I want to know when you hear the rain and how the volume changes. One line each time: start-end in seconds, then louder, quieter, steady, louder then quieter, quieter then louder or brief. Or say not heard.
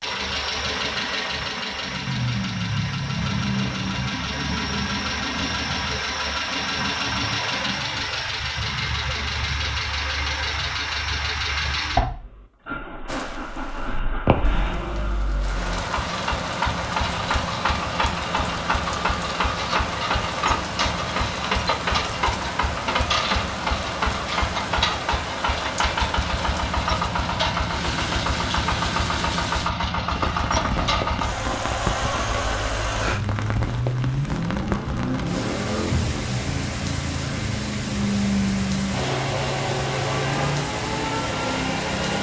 13.1-42.1 steady.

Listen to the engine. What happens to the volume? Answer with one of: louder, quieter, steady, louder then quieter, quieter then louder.
steady.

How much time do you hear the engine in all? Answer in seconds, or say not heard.
42 s.